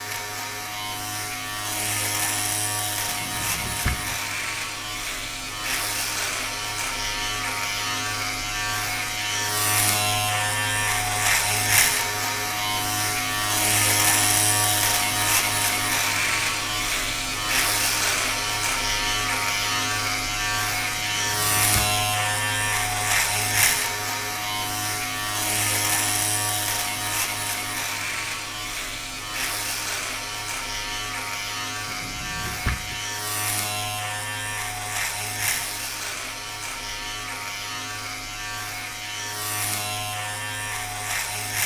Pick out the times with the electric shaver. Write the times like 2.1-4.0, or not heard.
0.0-41.6.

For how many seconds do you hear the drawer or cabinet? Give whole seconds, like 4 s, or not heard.
3 s.